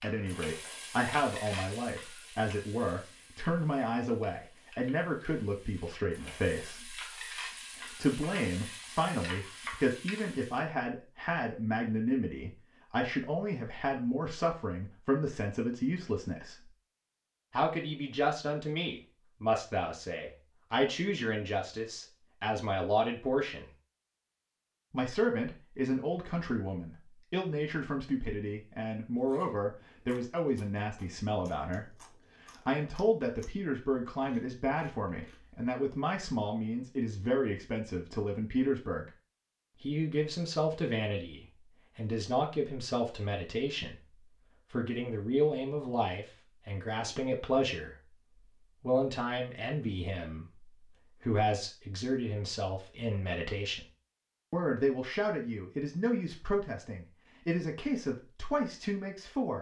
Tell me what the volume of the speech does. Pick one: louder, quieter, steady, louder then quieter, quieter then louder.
steady.